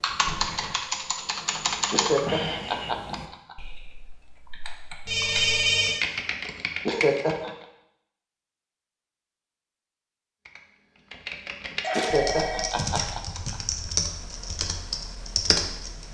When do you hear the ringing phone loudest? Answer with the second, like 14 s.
6 s.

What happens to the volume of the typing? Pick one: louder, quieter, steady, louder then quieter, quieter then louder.
quieter then louder.